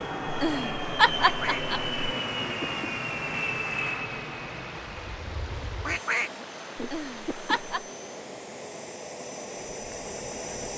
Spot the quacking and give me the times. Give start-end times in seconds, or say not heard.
1.2-3.0, 5.8-7.6.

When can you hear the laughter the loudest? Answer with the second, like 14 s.
1 s.